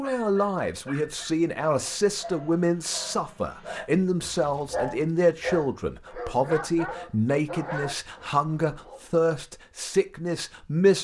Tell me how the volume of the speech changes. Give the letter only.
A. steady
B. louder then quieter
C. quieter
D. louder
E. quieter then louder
A.